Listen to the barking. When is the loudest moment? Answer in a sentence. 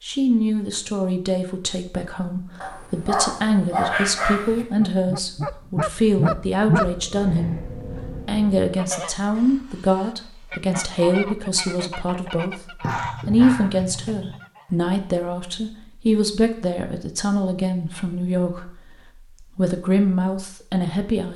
The loudest moment of the barking is at 4 seconds.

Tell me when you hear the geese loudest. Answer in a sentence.
The volume of the geese peaks at 7 seconds.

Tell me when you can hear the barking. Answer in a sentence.
You can hear the barking from 2.6 to 4.7 s and from 12.8 to 14.4 s.